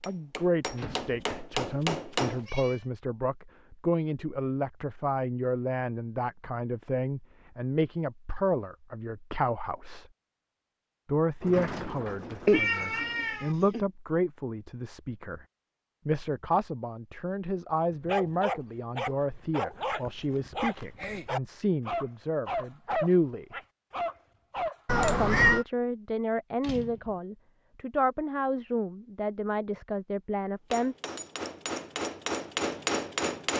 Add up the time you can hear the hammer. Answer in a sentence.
The hammer can be heard for 5 seconds in total.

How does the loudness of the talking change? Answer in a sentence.
The volume of the talking stays about the same.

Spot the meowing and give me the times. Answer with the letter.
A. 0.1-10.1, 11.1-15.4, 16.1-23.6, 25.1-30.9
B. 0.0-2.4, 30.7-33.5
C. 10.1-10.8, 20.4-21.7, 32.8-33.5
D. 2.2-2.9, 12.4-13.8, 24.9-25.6
D.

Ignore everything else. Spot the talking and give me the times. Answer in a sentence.
The talking can be heard from 0.1 to 10.1 s, from 11.1 to 15.4 s, from 16.1 to 23.6 s and from 25.1 to 30.9 s.